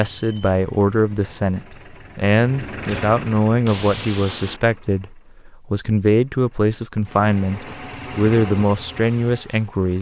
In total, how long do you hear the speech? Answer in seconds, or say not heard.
10 s.